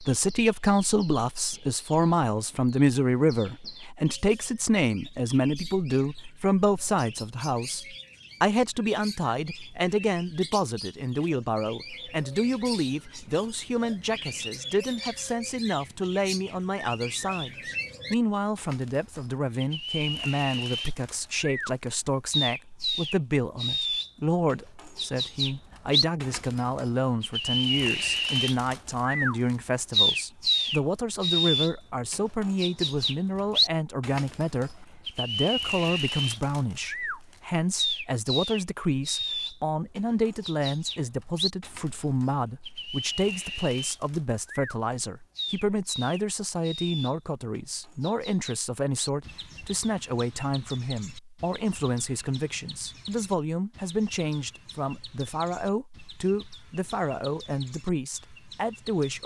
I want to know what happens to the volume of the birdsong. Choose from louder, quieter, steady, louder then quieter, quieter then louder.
louder then quieter.